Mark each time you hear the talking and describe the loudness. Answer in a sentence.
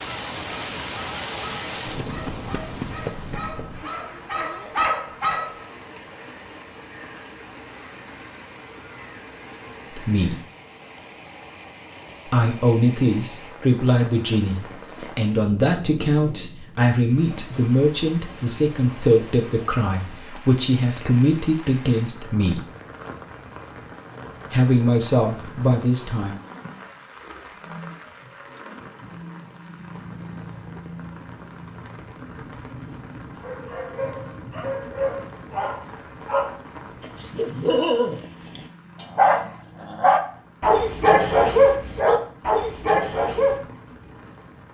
The talking can be heard briefly from 9.9 to 10.4 s; from 12.2 to 22.6 s, at a steady volume; and briefly from 24.5 to 26.4 s.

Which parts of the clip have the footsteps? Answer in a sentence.
The footsteps can't be heard in this clip.